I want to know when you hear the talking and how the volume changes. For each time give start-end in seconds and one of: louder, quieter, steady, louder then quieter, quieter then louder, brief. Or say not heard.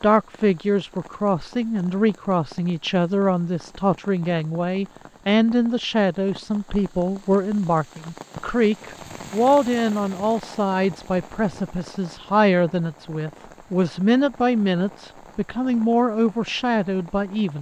0.0-17.5 steady.